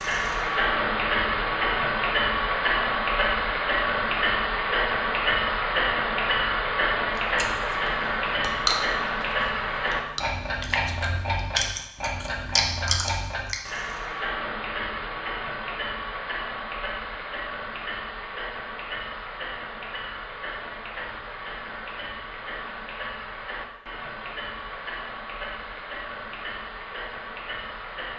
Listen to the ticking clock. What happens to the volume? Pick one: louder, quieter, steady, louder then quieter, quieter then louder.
quieter.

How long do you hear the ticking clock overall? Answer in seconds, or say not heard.
28 s.